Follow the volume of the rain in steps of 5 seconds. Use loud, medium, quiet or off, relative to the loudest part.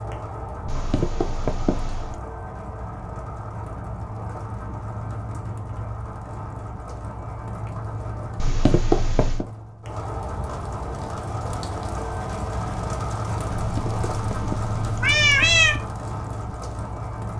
medium, medium, loud, loud.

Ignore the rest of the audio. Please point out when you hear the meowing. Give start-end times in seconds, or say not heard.
0.7-2.2, 8.3-9.4, 13.6-15.8.